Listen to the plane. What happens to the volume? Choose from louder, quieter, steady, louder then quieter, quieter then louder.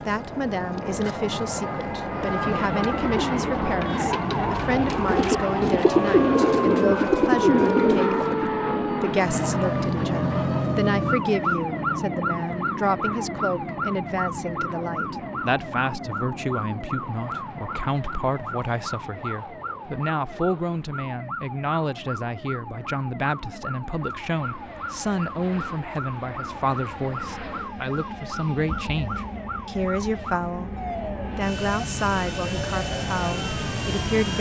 quieter then louder.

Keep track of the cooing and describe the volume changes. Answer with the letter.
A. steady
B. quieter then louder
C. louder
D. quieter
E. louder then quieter
C.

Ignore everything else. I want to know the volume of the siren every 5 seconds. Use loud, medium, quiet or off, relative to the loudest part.
medium, loud, loud, medium, medium, medium, medium.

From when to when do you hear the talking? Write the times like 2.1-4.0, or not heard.
0.1-34.3.